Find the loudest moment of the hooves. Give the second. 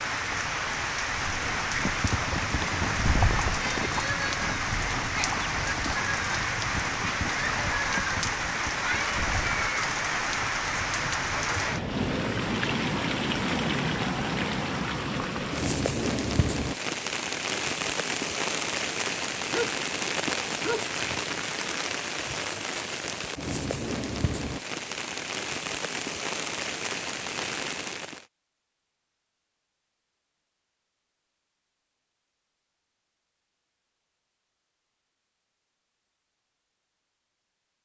3 s.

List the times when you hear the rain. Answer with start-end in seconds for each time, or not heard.
0.0-28.2.